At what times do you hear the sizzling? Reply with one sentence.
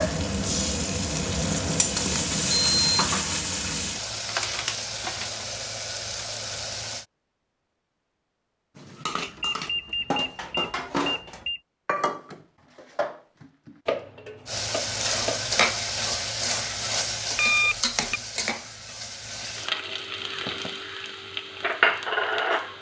The sizzling can be heard from 0.0 to 7.0 s and from 14.4 to 22.7 s.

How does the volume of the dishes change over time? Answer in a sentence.
The loudness of the dishes goes down.